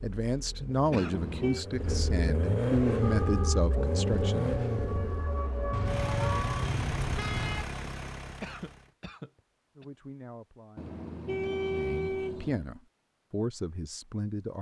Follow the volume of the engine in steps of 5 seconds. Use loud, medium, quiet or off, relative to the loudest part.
loud, medium, off.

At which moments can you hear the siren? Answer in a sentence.
The siren can be heard from 2.9 to 6.7 s.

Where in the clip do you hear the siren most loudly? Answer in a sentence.
The volume of the siren peaks at 6 seconds.